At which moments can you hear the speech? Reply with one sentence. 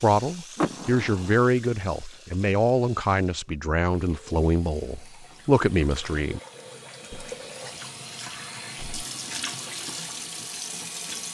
The speech can be heard from 0.0 to 6.4 s.